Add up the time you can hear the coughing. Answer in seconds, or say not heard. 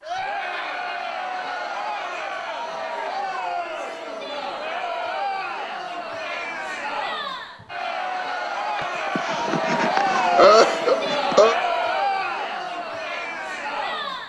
3 s.